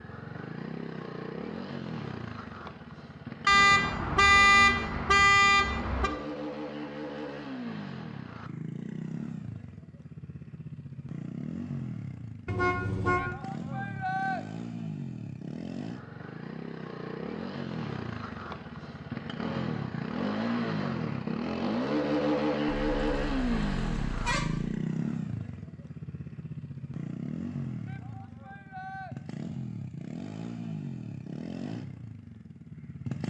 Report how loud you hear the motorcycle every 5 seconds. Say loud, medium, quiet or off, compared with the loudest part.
medium, medium, medium, medium, loud, medium, medium.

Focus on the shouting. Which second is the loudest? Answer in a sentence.
The loudest moment of the shouting is at 14 seconds.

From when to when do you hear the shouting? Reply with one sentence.
You can hear the shouting from 13.2 to 14.4 s and from 27.9 to 29.1 s.